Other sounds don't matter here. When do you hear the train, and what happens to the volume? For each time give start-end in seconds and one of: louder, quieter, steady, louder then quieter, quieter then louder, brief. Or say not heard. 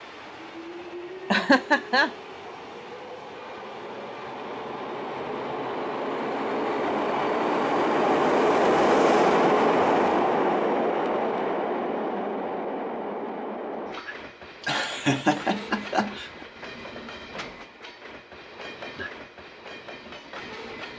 0.0-20.9 louder then quieter.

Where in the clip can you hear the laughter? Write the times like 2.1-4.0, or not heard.
1.3-2.1, 14.6-16.4.